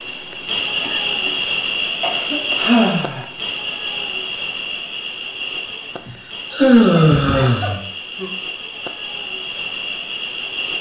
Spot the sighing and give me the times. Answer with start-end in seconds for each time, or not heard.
2.5-3.2, 5.7-8.3.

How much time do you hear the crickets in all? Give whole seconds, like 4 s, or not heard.
11 s.